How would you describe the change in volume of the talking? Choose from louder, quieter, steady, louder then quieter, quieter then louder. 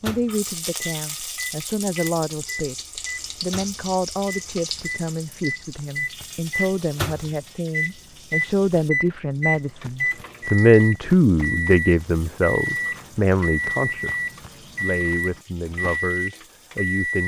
louder then quieter.